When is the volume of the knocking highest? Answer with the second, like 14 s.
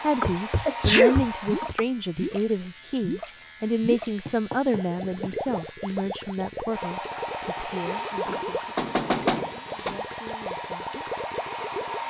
9 s.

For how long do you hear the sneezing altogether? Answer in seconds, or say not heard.
2 s.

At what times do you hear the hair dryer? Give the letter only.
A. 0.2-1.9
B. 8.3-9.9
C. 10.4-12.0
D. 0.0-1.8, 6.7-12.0
D.